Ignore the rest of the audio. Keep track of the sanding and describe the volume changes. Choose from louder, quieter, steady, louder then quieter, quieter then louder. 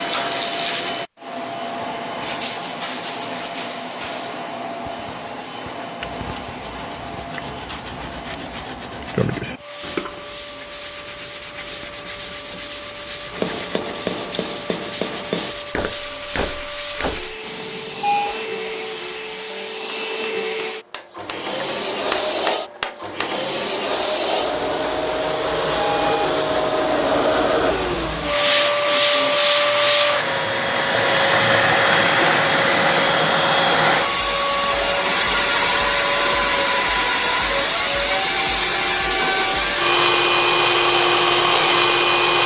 louder then quieter.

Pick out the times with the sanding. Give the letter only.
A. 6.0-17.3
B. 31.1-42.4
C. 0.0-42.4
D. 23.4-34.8
A.